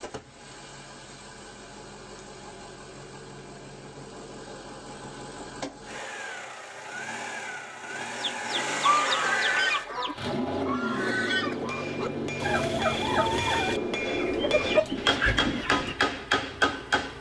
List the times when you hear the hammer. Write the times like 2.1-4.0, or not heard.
11.0-17.1.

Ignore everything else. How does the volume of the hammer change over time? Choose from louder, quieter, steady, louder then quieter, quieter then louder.
louder.